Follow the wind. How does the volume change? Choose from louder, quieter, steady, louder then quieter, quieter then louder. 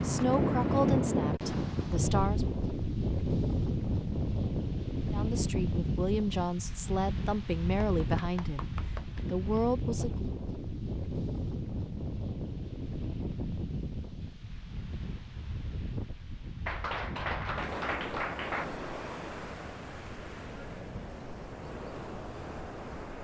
quieter.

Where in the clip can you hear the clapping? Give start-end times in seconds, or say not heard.
7.8-9.2, 16.6-18.6.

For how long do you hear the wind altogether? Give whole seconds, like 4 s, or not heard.
23 s.